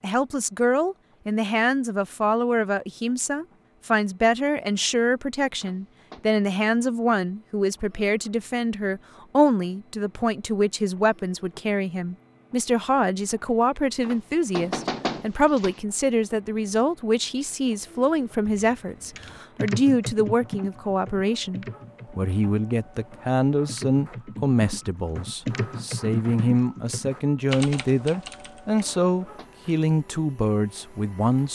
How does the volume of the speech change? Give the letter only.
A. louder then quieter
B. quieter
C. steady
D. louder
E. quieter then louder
C.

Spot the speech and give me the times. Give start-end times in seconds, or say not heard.
0.0-31.5.